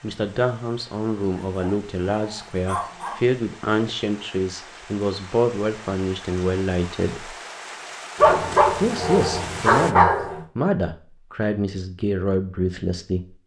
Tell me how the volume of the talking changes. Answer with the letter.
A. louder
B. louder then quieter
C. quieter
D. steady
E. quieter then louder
D.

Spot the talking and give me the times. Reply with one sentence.
You can hear the talking from 0.0 to 7.3 s and from 8.8 to 13.3 s.